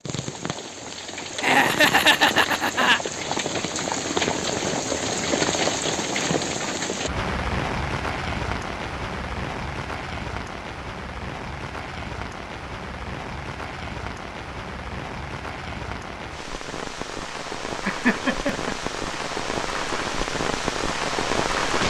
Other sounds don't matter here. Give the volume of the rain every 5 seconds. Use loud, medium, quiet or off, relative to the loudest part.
loud, loud, medium, medium, loud.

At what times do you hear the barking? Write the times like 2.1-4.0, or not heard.
not heard.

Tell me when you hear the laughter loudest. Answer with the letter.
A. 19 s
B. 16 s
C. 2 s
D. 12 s
C.